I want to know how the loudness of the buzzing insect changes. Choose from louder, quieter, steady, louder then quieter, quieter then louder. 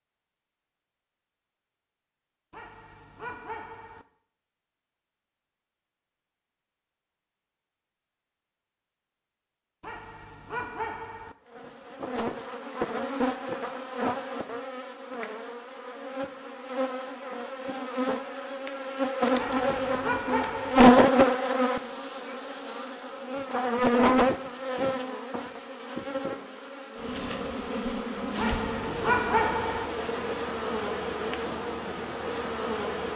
louder then quieter.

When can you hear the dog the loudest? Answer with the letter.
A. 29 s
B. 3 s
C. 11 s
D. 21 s
A.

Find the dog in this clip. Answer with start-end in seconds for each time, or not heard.
2.5-4.0, 9.8-11.3, 19.4-20.9, 28.4-29.9.